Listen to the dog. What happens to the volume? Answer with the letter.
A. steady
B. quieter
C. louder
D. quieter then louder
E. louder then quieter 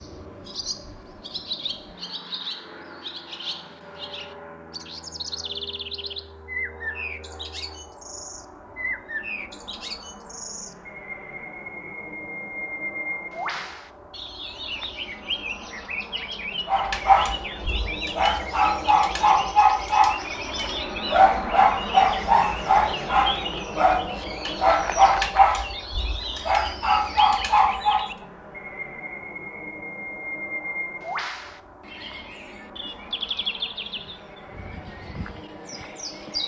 A.